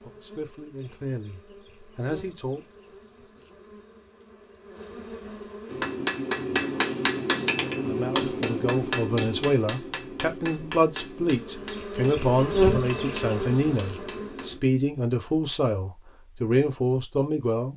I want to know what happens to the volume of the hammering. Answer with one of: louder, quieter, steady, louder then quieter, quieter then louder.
quieter.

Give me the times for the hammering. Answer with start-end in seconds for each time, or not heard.
5.7-14.6.